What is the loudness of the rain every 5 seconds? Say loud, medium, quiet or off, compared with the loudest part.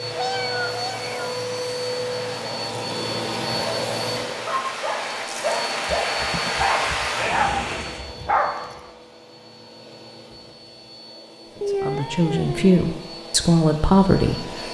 medium, loud, off.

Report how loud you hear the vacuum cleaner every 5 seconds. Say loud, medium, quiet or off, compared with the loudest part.
loud, medium, medium.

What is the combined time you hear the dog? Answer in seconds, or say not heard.
5 s.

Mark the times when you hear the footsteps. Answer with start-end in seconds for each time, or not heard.
not heard.